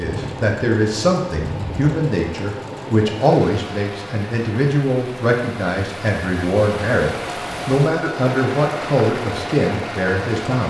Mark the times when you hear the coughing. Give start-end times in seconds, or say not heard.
not heard.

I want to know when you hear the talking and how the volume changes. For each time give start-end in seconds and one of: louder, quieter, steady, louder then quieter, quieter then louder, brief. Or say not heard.
0.0-10.6 steady.